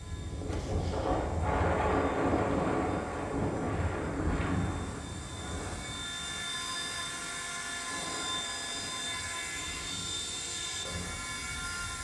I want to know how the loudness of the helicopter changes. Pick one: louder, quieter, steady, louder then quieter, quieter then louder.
louder.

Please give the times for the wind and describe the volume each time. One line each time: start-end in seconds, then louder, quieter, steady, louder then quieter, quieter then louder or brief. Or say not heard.
0.0-11.9 quieter.